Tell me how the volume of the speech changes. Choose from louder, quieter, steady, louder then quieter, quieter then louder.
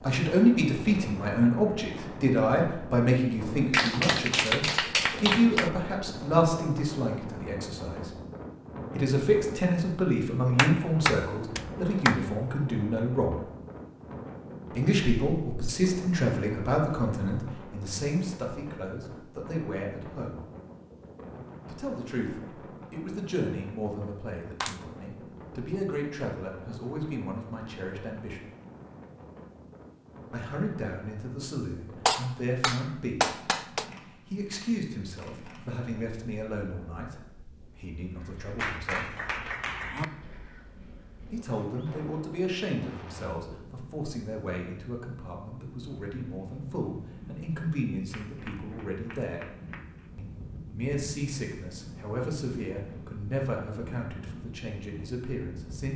quieter.